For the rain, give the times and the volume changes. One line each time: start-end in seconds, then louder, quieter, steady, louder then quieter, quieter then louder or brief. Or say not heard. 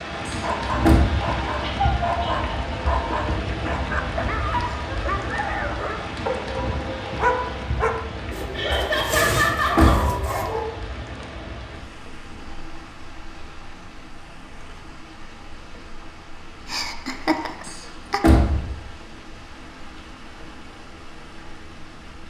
0.0-22.2 quieter.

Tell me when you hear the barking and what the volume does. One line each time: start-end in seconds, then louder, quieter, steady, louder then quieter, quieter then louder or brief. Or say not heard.
0.4-10.8 steady.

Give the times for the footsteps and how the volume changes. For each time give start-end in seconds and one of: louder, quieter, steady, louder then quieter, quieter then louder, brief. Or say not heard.
not heard.